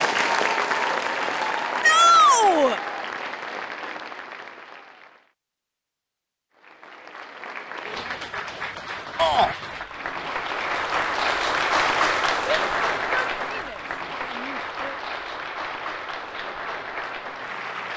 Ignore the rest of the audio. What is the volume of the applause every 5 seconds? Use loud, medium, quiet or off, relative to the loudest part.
loud, medium, loud, medium.